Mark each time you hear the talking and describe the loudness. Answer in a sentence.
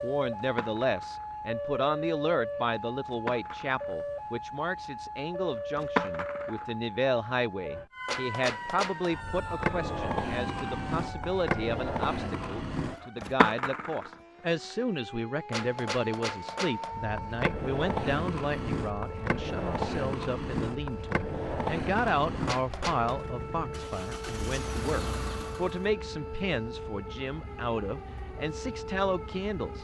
You can hear the talking from 0.0 to 29.8 s, at a steady volume.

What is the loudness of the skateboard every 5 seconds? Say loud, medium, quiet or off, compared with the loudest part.
medium, loud, loud, loud, loud, off.